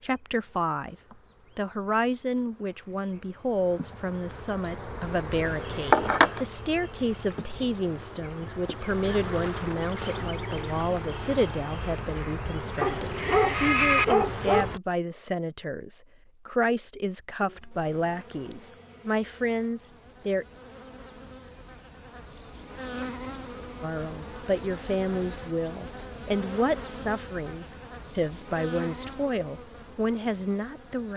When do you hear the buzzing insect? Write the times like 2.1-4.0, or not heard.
0.0-14.8, 17.4-31.1.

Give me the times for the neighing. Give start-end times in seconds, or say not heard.
12.8-14.1.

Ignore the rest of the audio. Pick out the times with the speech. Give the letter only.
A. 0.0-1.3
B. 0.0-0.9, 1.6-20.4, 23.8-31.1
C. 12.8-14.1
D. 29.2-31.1
B.